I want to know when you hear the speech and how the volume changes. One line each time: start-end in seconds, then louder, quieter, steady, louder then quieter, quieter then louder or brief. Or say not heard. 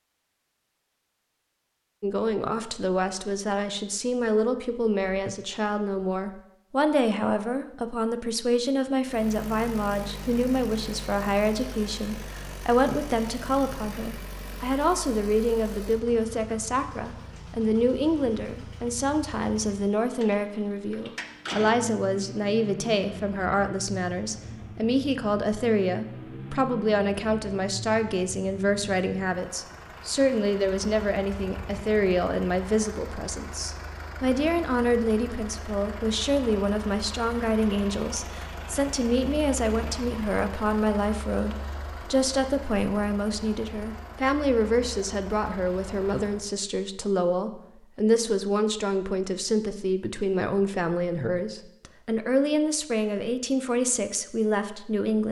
2.0-55.2 steady.